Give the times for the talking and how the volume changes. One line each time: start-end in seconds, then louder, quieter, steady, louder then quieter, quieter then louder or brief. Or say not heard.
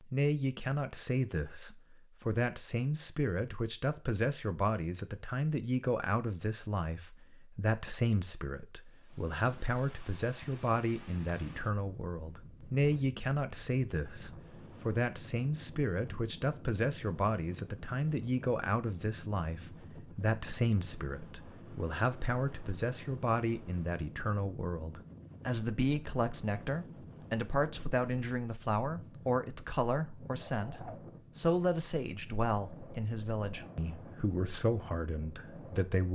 0.1-36.1 steady.